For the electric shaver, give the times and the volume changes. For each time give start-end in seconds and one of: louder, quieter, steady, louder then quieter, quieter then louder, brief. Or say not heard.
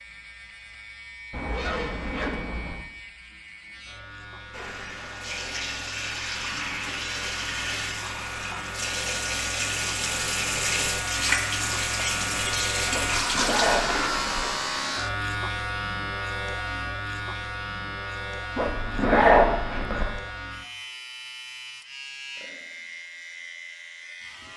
0.0-24.5 louder then quieter.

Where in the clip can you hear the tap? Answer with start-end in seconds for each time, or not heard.
4.5-15.0.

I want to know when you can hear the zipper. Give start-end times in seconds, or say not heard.
1.3-2.8, 12.9-14.4, 18.6-20.1.